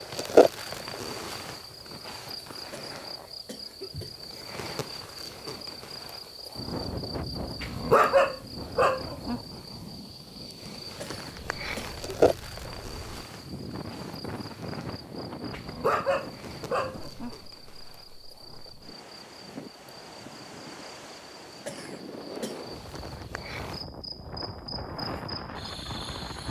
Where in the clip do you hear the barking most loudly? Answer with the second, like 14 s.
8 s.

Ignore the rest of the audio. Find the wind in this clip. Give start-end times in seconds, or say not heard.
6.5-26.4.